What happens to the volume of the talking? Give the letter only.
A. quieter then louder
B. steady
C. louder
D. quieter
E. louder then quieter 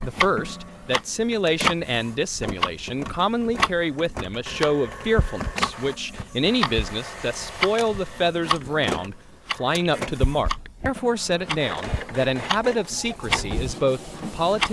B.